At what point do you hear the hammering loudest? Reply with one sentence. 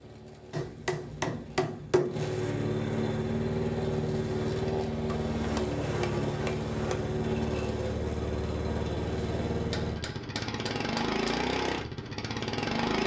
The volume of the hammering peaks at 2 seconds.